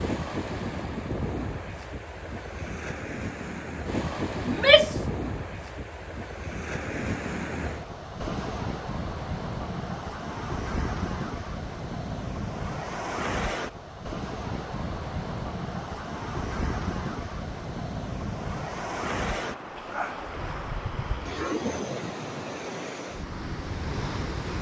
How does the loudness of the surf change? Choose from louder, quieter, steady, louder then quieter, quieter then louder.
steady.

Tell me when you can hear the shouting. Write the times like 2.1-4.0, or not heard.
4.5-5.0.